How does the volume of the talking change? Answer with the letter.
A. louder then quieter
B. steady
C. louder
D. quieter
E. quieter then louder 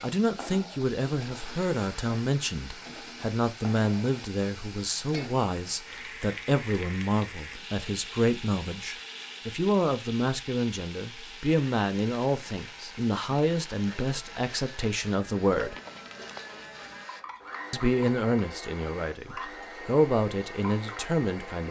B.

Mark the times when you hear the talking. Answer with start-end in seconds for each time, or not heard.
0.0-15.8, 17.7-21.6.